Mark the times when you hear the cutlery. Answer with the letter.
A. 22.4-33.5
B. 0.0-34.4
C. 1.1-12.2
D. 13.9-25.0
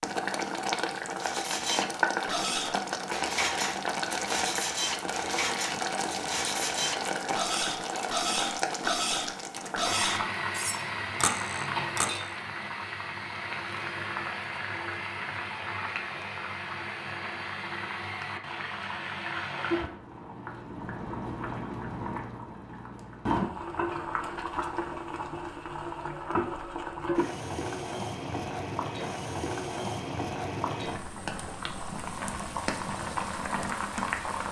C.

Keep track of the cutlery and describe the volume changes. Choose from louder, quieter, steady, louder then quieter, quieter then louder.
steady.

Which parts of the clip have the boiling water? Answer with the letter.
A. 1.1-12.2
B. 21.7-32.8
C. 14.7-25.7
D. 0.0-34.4
D.